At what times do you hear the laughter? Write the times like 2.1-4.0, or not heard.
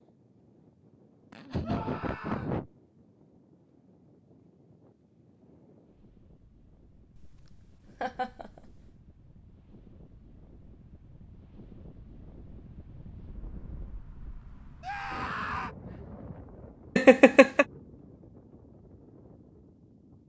1.3-2.7, 7.2-8.7, 16.9-17.6.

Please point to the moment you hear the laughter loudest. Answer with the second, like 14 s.
17 s.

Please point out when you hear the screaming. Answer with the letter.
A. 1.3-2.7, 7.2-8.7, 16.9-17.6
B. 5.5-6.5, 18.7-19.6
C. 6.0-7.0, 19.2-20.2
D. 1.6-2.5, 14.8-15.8
D.